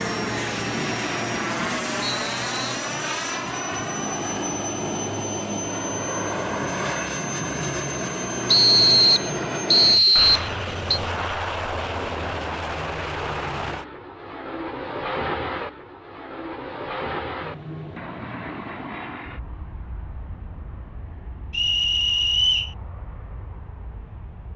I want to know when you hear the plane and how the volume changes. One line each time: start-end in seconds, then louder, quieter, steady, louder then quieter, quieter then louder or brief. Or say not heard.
0.0-24.5 quieter.